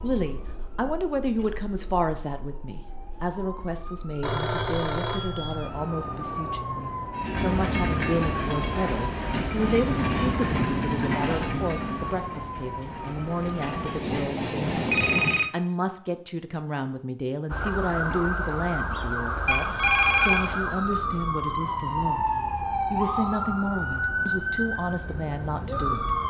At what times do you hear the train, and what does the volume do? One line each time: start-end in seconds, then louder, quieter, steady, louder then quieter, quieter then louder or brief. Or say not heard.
7.1-15.4 quieter then louder.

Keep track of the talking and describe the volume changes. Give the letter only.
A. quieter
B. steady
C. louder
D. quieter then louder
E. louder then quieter
B.